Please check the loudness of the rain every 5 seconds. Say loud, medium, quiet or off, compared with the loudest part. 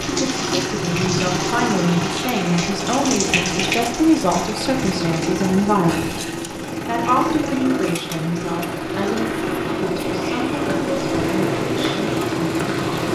loud, medium, loud.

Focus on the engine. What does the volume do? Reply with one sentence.
The loudness of the engine stays about the same.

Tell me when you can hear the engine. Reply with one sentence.
You can hear the engine from 0.0 to 13.1 s.